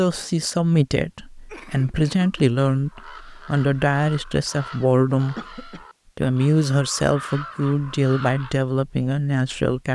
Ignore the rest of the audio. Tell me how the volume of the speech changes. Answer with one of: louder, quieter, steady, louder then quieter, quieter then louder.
steady.